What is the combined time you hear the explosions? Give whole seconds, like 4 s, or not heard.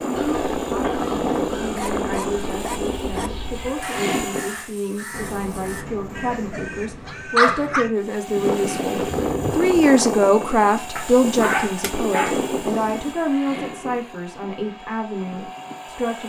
2 s.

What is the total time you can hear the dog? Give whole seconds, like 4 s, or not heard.
6 s.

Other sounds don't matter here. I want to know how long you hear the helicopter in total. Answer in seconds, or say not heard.
13 s.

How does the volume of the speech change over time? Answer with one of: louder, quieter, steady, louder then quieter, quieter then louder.
louder then quieter.